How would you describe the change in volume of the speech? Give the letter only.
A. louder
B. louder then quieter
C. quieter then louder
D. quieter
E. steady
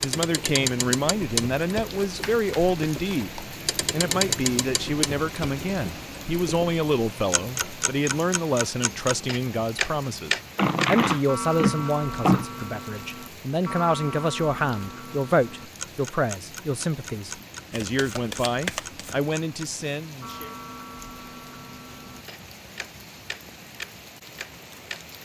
E.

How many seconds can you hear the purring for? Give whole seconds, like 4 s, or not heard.
not heard.